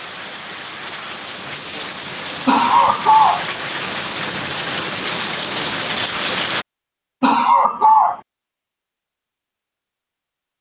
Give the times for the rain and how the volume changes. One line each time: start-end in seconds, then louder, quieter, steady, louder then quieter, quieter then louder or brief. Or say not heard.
0.0-6.7 louder.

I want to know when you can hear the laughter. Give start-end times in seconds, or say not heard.
2.5-3.5, 7.2-8.2.